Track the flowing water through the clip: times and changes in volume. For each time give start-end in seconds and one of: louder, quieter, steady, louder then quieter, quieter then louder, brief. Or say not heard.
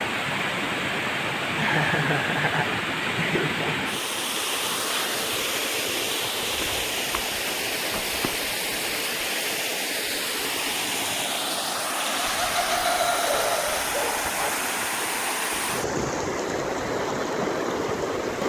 0.0-18.4 steady.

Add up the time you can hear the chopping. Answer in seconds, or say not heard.
not heard.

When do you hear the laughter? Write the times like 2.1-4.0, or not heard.
1.6-3.9, 12.2-13.8.